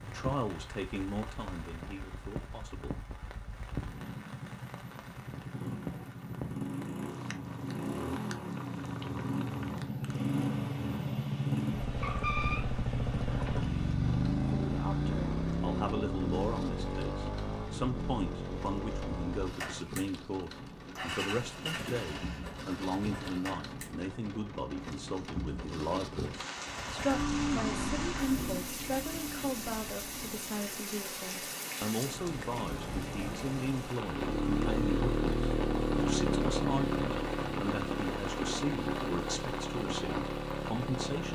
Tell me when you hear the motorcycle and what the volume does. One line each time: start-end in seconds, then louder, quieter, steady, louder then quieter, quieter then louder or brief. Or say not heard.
0.0-24.1 louder then quieter
26.6-30.6 quieter
34.0-41.3 quieter.